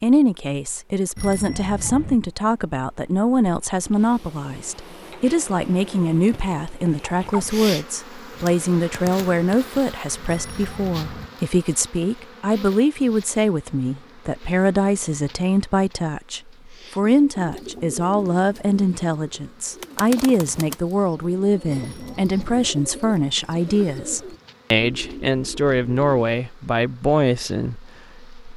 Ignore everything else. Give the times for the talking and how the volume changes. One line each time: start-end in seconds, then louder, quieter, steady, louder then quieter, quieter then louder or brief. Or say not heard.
0.0-28.4 steady.